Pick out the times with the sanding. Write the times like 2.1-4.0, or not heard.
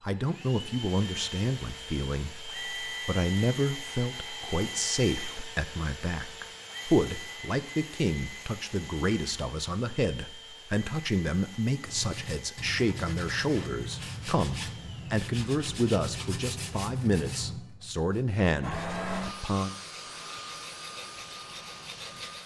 11.8-22.4.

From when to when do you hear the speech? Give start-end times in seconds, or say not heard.
0.0-19.8.